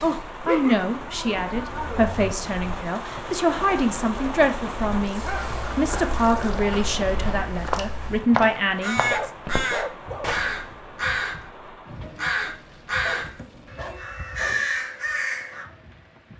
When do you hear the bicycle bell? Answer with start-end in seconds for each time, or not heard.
not heard.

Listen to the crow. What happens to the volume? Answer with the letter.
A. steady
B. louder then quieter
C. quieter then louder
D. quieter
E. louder
E.